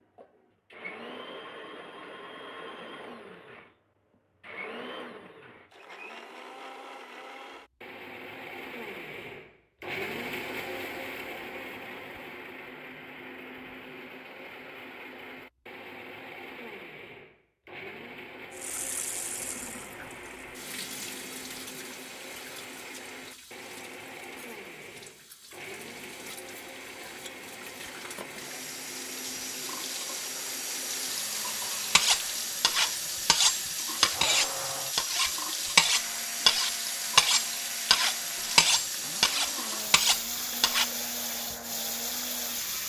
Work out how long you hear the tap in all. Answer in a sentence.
The tap can be heard for 24 seconds in total.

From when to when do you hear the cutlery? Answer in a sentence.
You can hear the cutlery from 31.9 to 40.9 s.